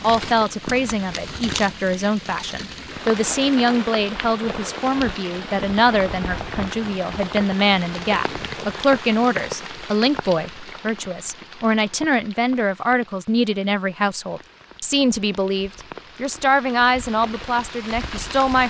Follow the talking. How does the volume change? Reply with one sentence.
The loudness of the talking stays about the same.